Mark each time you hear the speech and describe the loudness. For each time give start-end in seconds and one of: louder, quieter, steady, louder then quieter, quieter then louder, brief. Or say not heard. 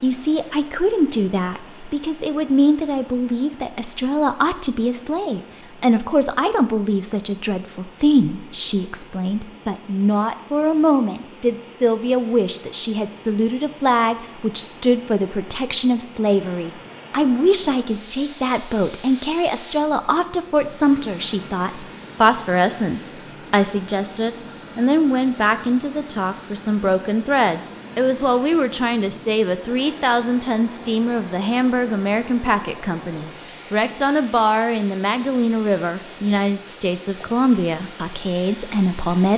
0.0-39.3 steady.